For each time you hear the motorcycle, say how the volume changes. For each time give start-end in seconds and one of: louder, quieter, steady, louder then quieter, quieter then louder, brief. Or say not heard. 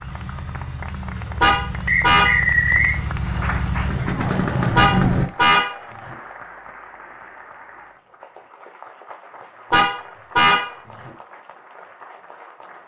0.0-5.2 louder.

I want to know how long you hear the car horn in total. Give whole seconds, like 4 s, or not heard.
4 s.